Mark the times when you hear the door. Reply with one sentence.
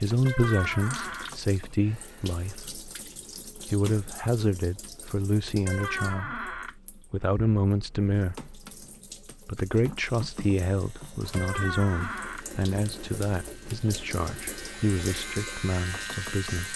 The door can be heard from 0.2 to 1.4 s, from 5.7 to 6.8 s and from 11.3 to 12.4 s.